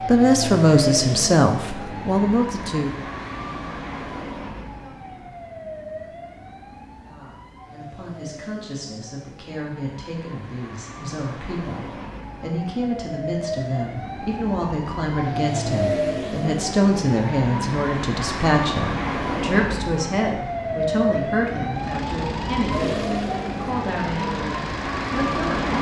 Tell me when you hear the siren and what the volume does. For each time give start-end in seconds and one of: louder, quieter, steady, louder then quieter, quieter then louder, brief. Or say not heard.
0.0-25.7 quieter then louder.